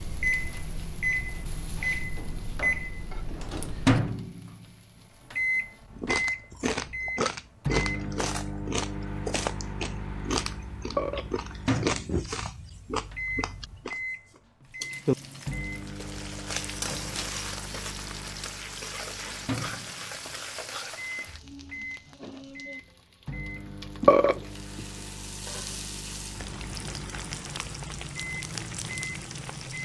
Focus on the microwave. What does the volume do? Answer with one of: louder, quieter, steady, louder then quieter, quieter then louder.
quieter.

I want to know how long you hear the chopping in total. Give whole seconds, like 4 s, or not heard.
not heard.